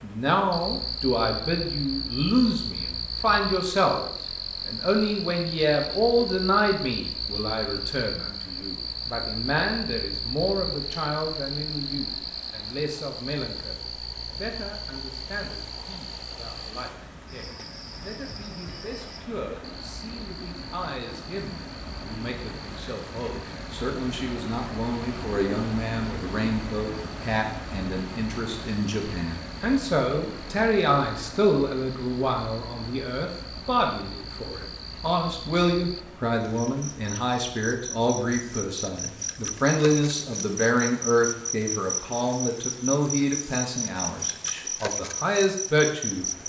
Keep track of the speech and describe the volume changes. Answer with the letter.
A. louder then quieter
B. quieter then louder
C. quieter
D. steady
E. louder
B.